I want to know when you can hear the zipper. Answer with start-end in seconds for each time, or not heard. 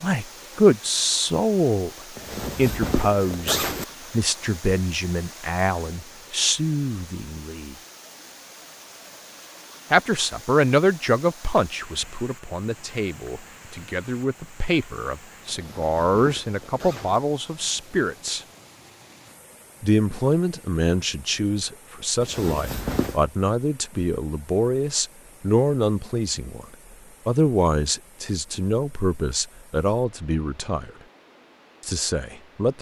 2.1-3.9, 15.5-17.2, 22.2-23.2.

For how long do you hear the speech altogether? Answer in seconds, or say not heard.
28 s.